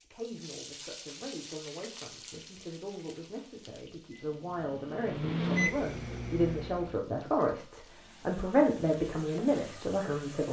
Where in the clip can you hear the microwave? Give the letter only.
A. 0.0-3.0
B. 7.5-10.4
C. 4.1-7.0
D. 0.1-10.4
C.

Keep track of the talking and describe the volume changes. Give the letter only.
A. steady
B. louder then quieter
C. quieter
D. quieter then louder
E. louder
E.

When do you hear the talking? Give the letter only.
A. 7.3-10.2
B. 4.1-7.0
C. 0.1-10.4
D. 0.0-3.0
C.